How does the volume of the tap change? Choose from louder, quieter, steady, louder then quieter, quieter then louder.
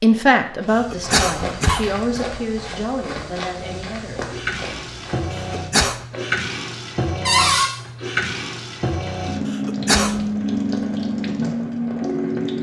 louder.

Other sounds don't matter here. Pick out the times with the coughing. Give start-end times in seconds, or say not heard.
0.8-2.2, 5.3-6.0, 9.4-10.2.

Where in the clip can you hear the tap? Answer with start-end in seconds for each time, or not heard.
3.5-12.5.